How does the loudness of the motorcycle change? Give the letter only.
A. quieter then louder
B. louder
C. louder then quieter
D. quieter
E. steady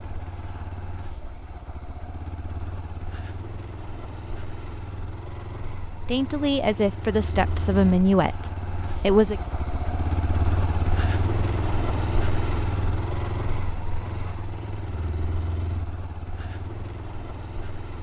C.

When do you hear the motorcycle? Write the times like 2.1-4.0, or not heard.
0.0-17.9.